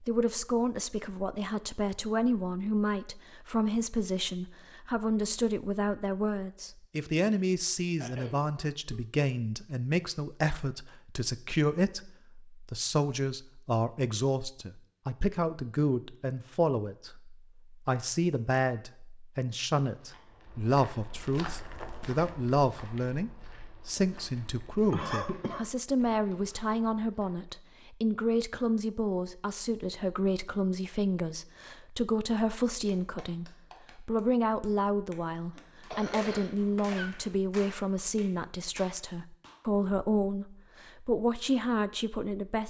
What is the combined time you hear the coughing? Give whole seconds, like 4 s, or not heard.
4 s.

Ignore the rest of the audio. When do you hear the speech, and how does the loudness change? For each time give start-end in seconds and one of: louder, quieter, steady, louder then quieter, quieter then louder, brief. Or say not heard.
0.0-42.6 steady.